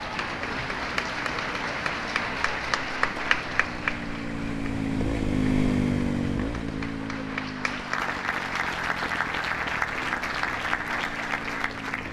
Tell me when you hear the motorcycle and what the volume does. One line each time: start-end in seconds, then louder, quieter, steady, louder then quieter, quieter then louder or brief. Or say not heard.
0.0-12.0 louder then quieter.